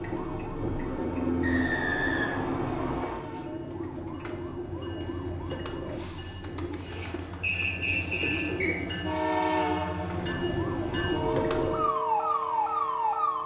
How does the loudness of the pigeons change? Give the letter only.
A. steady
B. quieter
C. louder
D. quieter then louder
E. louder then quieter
C.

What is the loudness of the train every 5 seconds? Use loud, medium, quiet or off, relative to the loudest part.
medium, loud, loud.